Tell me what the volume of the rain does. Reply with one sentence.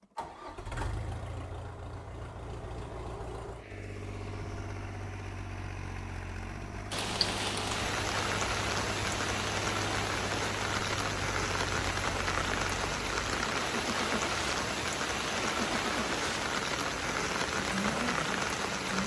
The loudness of the rain stays about the same.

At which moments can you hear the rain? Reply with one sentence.
The rain can be heard from 6.9 to 19.0 s.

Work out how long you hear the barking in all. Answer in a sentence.
The barking can't be heard in this clip.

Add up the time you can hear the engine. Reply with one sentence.
You can hear the engine for 19 seconds altogether.